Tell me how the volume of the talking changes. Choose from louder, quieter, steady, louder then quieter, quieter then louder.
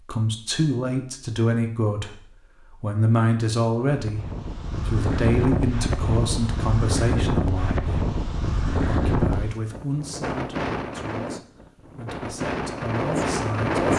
quieter.